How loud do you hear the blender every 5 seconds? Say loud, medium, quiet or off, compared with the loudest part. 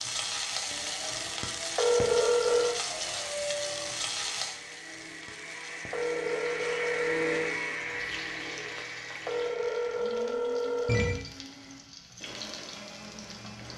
medium, loud, medium.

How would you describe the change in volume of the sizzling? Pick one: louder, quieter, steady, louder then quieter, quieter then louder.
quieter.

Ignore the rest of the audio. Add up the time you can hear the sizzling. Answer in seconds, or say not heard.
14 s.